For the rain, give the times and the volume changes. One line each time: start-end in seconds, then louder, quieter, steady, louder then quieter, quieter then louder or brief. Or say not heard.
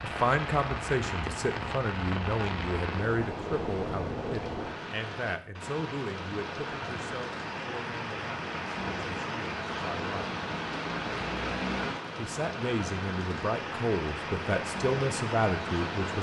0.0-16.1 steady.